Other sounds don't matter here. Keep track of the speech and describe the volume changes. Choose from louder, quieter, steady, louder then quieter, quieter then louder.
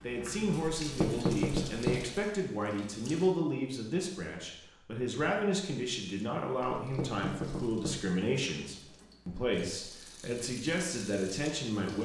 steady.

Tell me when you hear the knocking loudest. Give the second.
1 s.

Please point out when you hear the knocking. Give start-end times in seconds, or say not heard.
0.8-2.0, 6.8-8.1.